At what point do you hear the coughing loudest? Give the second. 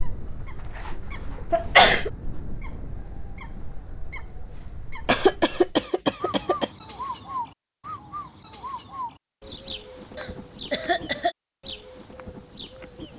2 s.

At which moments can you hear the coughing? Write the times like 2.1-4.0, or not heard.
1.5-2.1, 5.0-6.7, 10.2-11.3.